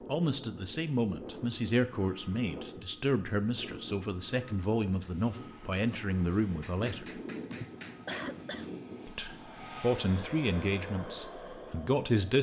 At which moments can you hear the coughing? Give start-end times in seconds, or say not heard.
7.5-9.2.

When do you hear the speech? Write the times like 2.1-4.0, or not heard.
0.1-7.2, 9.1-12.3.